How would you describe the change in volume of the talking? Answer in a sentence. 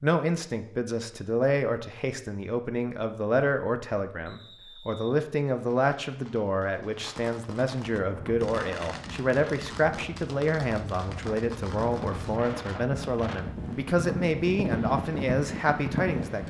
The loudness of the talking stays about the same.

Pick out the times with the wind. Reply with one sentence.
The wind can be heard from 8.0 to 16.4 s.